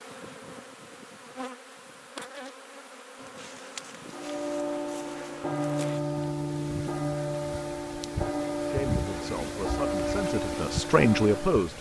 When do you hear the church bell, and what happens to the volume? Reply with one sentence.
You can hear the church bell from 4.0 to 11.7 s, at a steady volume.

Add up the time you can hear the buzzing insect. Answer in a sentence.
The buzzing insect can be heard for 12 seconds in total.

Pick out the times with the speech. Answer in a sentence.
You can hear the speech from 8.7 to 11.7 s.